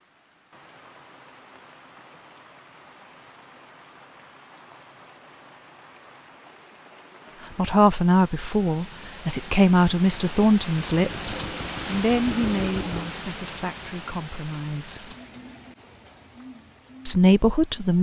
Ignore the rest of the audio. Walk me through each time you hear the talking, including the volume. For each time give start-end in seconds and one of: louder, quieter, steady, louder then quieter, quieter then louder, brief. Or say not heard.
7.5-15.2 quieter
17.1-17.9 brief.